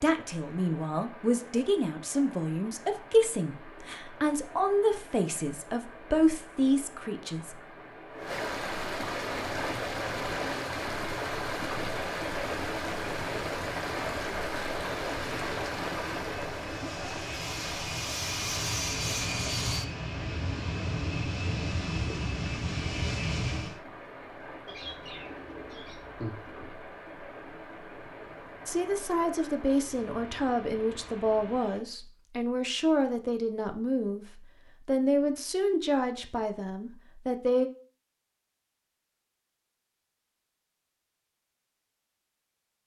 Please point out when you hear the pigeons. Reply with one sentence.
You can hear the pigeons from 24.6 to 26.7 s.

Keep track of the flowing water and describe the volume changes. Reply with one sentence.
The volume of the flowing water goes up, then down.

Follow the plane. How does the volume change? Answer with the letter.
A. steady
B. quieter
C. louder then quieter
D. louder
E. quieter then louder
D.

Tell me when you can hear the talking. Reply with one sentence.
The talking can be heard from 0.0 to 7.5 s and from 28.6 to 37.7 s.